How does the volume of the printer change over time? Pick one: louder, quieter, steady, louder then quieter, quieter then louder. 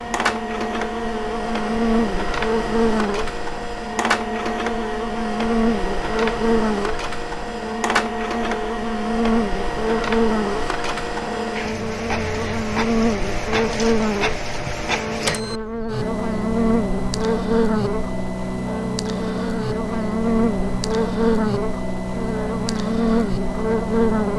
steady.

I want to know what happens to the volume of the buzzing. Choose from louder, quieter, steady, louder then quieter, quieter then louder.
steady.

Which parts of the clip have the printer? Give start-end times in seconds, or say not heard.
0.0-24.3.